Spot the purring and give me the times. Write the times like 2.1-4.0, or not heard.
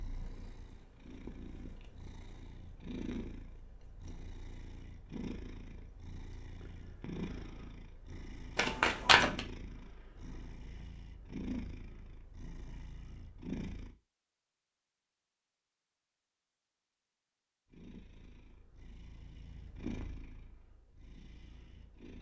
0.0-13.9, 17.6-22.1.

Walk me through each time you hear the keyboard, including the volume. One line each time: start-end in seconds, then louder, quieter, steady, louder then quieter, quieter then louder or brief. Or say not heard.
not heard.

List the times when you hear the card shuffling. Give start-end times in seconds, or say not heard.
8.6-9.4.